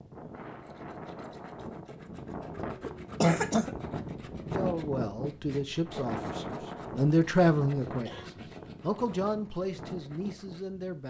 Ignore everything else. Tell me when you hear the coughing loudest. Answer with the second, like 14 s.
3 s.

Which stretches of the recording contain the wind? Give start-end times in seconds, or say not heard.
0.0-11.0.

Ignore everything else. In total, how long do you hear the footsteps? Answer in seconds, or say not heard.
not heard.